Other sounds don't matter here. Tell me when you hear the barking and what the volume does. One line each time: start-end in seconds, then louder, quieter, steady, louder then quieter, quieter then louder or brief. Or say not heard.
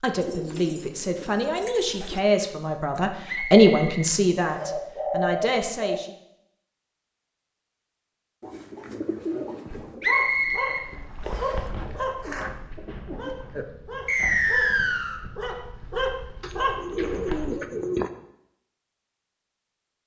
9.7-17.6 quieter then louder.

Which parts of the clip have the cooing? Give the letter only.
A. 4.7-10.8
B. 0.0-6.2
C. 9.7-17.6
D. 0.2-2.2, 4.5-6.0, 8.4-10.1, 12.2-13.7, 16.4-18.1
D.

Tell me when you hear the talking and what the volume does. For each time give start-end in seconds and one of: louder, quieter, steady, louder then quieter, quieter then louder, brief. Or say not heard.
0.0-6.2 louder then quieter.